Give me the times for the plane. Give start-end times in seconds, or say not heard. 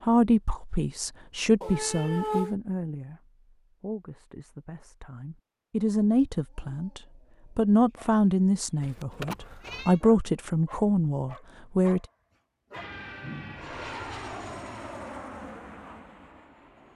12.7-16.9.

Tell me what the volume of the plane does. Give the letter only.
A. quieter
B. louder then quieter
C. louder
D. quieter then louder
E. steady
A.